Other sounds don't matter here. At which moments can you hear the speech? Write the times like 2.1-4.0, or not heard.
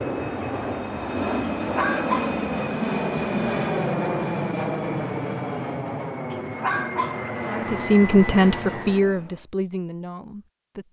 7.5-10.8.